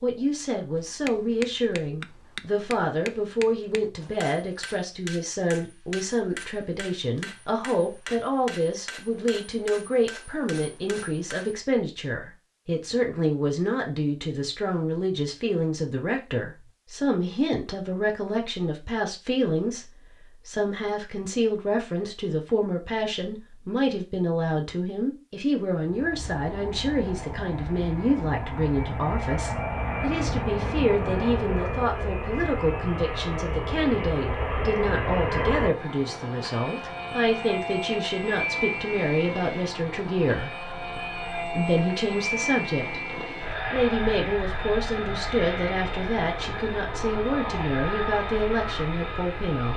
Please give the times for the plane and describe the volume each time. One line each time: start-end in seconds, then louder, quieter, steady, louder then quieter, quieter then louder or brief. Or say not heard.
25.9-49.7 steady.